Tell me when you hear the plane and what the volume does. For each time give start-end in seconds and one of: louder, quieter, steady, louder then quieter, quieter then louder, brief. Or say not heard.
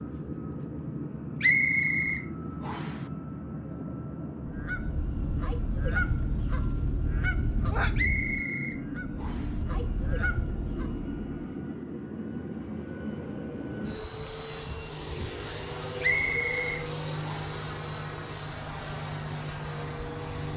0.0-20.5 steady.